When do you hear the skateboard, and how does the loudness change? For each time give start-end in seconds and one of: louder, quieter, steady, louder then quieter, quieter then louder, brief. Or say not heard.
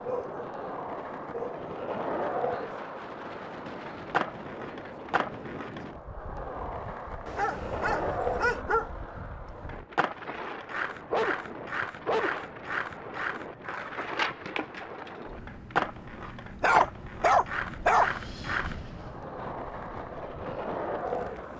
0.0-21.5 steady.